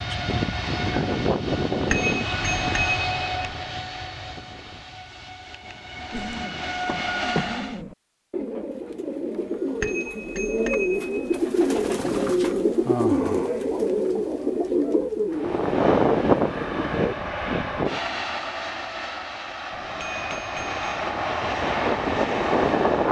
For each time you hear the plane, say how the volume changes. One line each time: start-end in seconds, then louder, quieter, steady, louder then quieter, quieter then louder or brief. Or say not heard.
0.0-7.8 quieter then louder
15.3-23.0 quieter then louder.